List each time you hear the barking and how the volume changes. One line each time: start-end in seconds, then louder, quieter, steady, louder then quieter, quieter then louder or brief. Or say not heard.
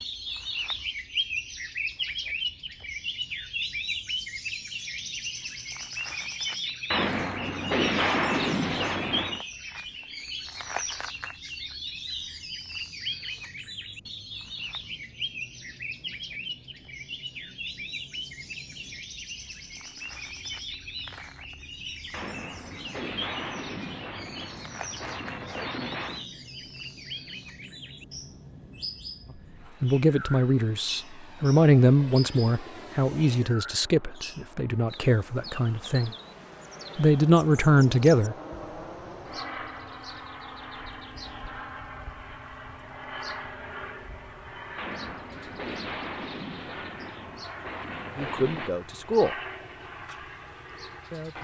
not heard.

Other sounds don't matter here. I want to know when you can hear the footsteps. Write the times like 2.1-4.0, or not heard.
not heard.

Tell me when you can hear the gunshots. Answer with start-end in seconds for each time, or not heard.
6.9-9.4, 22.1-26.2, 44.8-48.7.